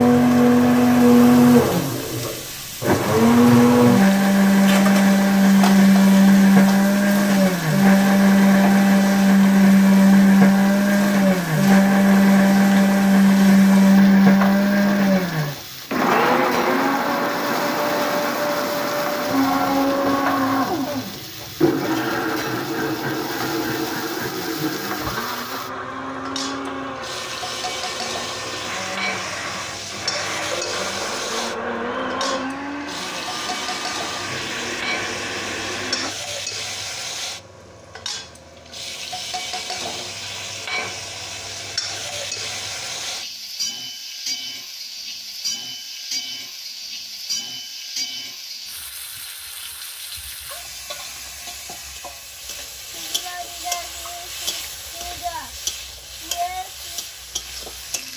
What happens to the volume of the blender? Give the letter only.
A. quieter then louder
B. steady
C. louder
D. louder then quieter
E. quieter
E.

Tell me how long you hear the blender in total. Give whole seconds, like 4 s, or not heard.
36 s.